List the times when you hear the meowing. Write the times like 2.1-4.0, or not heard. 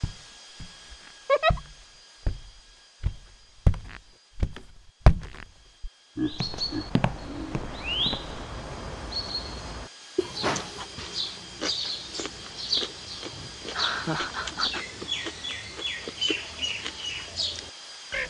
not heard.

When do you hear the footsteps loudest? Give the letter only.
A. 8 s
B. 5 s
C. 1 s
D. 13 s
B.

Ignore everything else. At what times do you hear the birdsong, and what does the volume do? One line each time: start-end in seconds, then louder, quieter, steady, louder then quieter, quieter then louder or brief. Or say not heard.
6.2-18.2 steady.